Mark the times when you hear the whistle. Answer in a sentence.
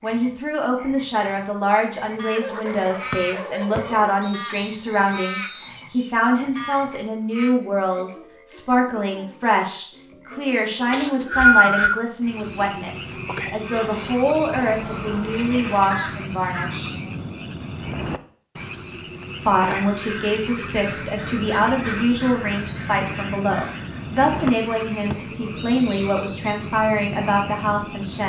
The whistle can be heard from 3.1 to 5.7 s, from 10.9 to 11.9 s and from 24.4 to 26.6 s.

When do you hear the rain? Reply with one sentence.
You can't hear the rain here.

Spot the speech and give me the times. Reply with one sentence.
You can hear the speech from 0.0 to 16.9 s and from 19.4 to 28.2 s.